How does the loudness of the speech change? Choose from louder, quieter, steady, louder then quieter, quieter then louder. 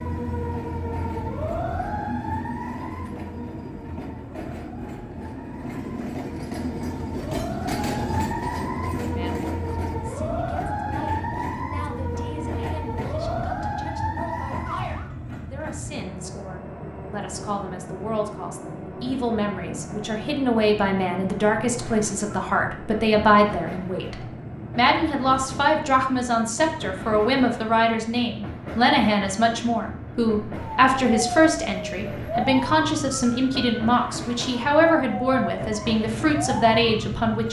louder.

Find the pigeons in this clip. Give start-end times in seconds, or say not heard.
not heard.